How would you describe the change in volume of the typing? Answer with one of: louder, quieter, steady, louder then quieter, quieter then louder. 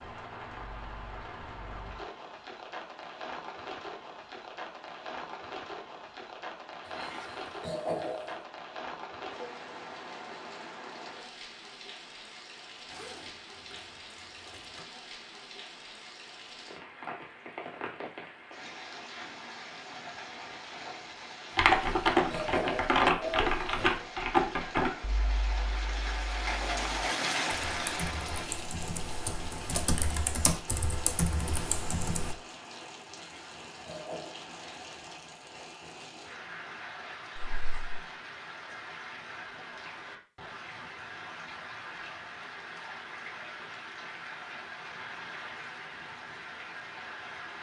quieter then louder.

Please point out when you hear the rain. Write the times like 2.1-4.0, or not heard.
0.0-47.5.